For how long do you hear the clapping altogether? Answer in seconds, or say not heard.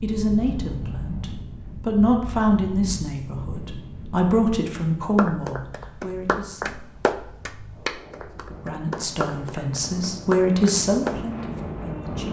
6 s.